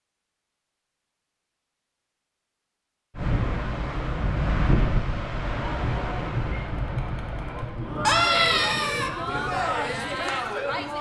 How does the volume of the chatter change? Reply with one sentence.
The loudness of the chatter goes up.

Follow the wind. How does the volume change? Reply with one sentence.
The volume of the wind goes down.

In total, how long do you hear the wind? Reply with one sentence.
The wind can be heard for 8 seconds in total.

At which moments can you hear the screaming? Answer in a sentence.
You can hear the screaming from 8.0 to 9.1 s.